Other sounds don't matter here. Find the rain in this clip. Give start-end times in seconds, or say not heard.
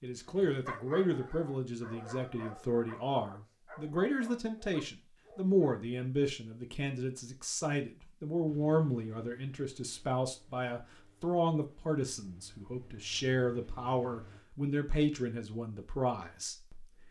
not heard.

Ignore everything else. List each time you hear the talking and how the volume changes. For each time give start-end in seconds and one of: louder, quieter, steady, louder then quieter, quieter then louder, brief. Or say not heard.
0.0-17.0 steady.